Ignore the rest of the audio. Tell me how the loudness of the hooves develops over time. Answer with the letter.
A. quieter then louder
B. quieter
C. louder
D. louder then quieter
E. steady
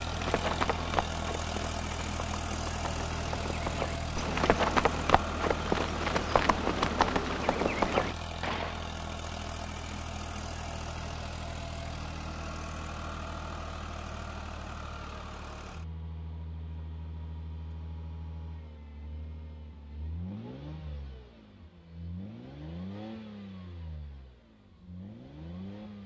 A.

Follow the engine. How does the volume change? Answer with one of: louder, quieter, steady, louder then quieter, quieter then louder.
quieter.